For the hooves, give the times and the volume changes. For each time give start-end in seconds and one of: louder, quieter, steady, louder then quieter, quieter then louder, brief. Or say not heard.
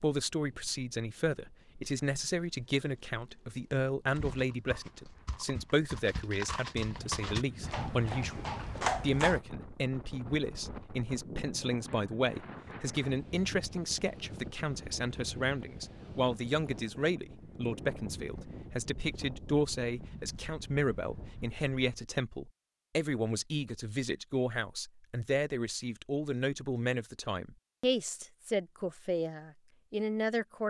4.1-9.4 louder.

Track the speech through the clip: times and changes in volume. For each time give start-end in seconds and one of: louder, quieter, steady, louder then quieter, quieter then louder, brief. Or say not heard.
0.0-30.6 steady.